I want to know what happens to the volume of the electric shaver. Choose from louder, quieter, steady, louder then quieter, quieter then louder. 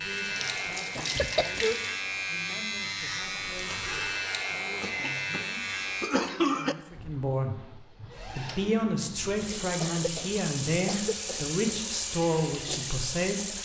steady.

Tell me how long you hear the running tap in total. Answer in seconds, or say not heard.
7 s.